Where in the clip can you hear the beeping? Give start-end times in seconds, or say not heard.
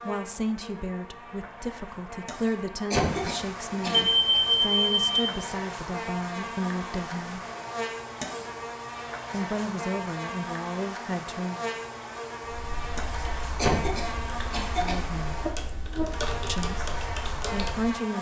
3.9-5.3.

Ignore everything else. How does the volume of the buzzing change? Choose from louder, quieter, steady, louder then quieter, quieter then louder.
louder.